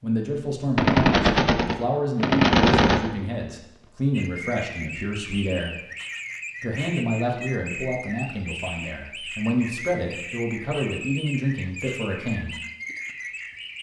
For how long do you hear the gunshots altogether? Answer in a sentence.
You can hear the gunshots for 2 seconds altogether.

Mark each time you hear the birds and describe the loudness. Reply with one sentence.
You can hear the birds from 4.1 to 13.7 s, at a steady volume.